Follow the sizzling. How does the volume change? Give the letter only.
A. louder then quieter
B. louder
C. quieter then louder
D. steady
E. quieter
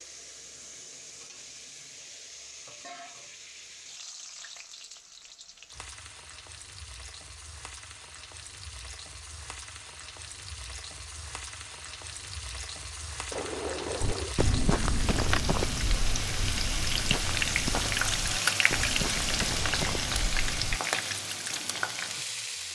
B.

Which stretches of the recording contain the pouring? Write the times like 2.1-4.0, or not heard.
13.3-14.3.